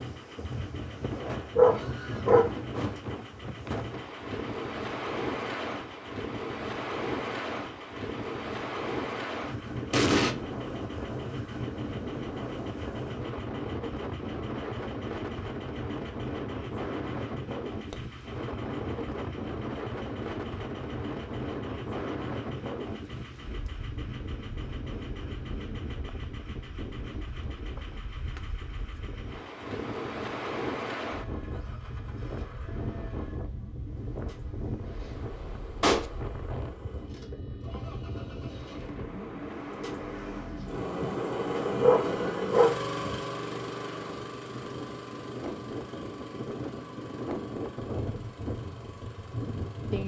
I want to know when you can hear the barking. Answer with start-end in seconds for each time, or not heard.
1.3-2.9, 41.5-43.1.